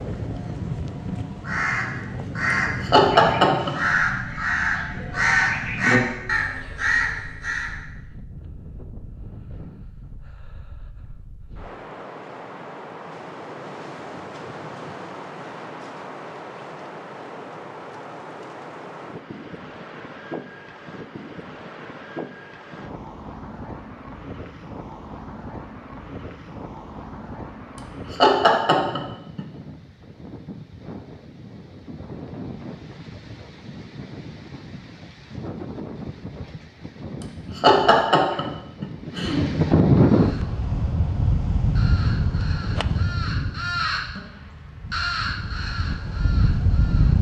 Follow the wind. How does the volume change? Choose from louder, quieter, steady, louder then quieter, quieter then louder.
louder.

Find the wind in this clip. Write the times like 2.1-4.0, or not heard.
0.0-47.1.